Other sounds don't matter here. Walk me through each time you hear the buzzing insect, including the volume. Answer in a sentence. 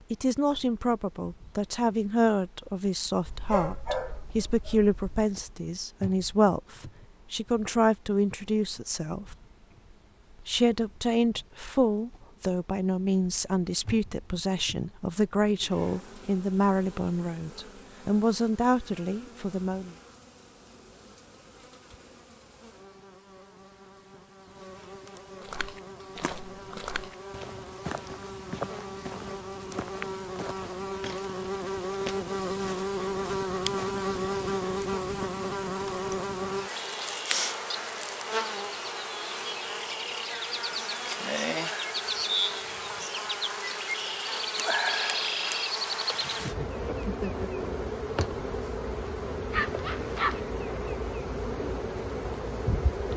You can hear the buzzing insect from 0.0 to 53.1 s, getting louder.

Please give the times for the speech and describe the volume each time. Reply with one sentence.
You can hear the speech from 0.1 to 9.3 s, at a steady volume; and from 10.4 to 19.9 s, at a steady volume.